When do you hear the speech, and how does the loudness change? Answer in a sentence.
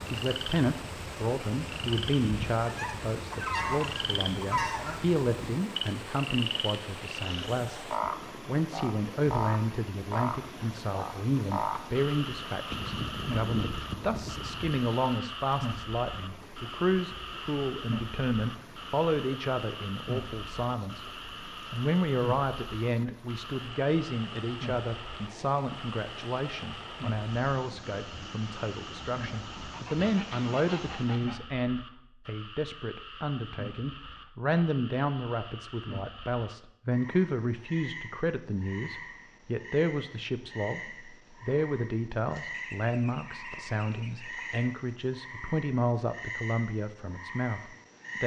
You can hear the speech from 0.0 to 21.1 s, at a steady volume; and from 21.7 to 48.2 s, at a steady volume.